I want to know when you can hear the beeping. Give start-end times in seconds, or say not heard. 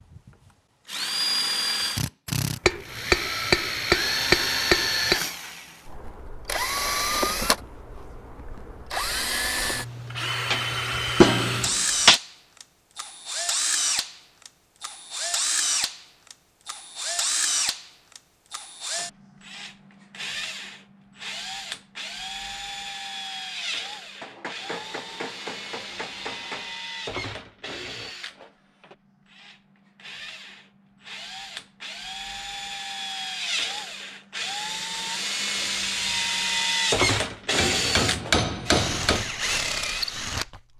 not heard.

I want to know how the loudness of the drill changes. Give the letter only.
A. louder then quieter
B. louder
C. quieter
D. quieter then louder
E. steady
D.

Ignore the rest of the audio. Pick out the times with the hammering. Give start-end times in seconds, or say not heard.
2.6-5.2, 10.5-12.2, 24.2-26.8, 37.5-39.2.